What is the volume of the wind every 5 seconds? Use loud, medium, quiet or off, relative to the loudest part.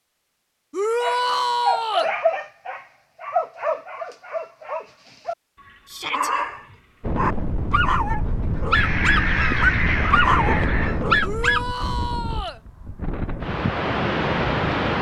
off, loud, loud.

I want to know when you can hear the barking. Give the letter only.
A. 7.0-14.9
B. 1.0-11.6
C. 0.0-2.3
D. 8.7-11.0
B.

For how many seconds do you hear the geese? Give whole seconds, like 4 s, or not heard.
2 s.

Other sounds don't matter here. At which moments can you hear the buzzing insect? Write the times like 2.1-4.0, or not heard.
not heard.